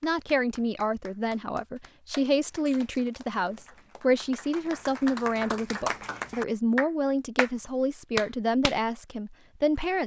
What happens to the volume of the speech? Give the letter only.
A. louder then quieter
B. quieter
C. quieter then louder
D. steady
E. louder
D.